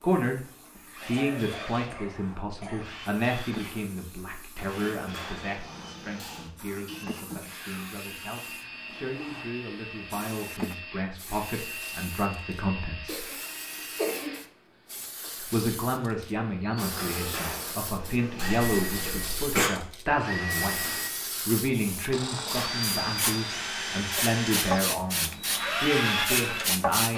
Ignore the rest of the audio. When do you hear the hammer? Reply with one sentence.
The hammer can be heard from 4.5 to 6.5 s and from 16.8 to 18.7 s.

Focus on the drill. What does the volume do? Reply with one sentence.
The loudness of the drill goes up.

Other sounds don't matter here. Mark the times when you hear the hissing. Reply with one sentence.
The hissing can be heard from 0.0 to 27.1 s.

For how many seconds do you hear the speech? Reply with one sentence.
You can hear the speech for 24 seconds altogether.